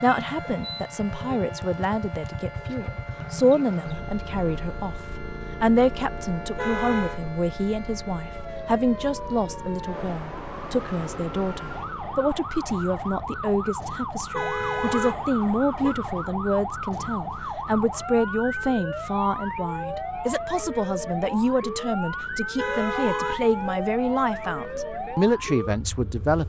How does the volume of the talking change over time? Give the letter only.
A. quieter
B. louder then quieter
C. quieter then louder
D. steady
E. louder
D.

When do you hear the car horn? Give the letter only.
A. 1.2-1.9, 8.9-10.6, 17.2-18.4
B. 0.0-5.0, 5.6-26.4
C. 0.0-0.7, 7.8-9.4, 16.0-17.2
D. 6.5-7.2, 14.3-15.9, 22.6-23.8
D.